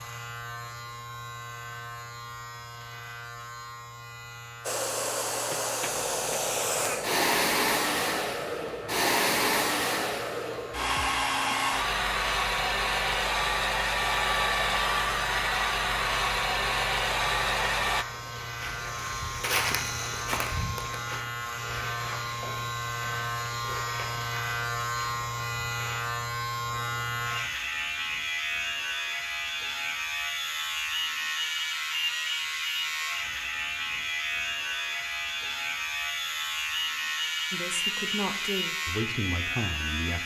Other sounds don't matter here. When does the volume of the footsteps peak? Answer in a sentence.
The volume of the footsteps peaks at 20 seconds.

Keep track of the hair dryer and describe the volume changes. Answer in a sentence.
The volume of the hair dryer stays about the same.